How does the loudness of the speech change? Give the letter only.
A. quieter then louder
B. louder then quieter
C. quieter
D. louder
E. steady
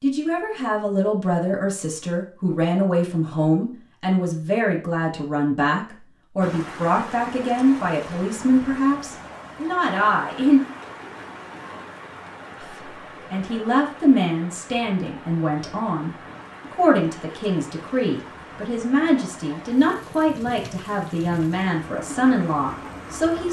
E.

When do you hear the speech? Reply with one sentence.
You can hear the speech from 0.0 to 10.6 s and from 12.6 to 23.4 s.